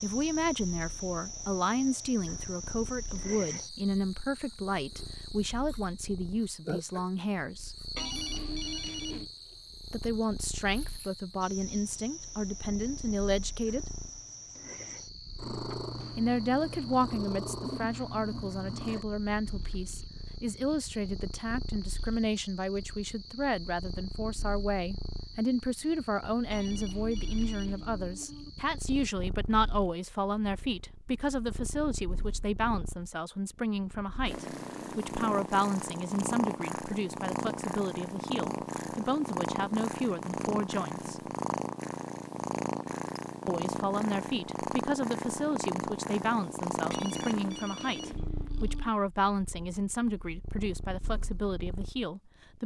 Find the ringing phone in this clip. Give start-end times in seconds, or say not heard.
8.0-9.3, 26.5-28.5, 46.9-48.9.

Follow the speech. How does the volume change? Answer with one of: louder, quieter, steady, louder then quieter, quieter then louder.
steady.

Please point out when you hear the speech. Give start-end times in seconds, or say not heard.
0.0-7.8, 9.9-13.8, 16.1-41.2, 43.5-52.6.